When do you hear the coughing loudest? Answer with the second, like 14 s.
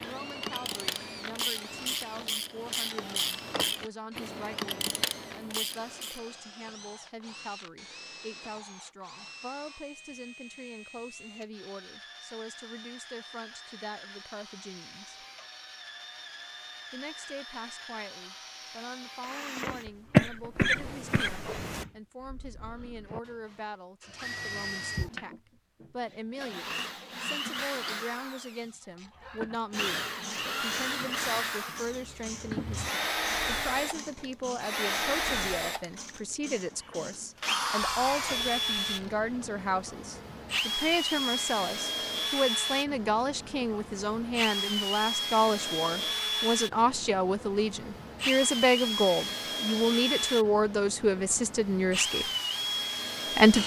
20 s.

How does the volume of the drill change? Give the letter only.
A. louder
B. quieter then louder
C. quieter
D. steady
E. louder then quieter
A.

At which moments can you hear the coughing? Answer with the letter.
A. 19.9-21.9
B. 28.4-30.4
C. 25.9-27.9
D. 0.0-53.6
A.